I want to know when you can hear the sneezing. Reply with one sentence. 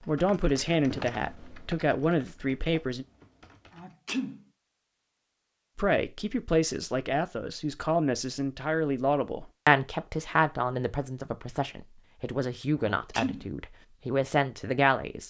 You can hear the sneezing from 3.7 to 4.5 s and from 12.9 to 13.5 s.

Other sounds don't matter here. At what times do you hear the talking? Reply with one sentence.
The talking can be heard from 0.1 to 3.0 s and from 5.8 to 15.2 s.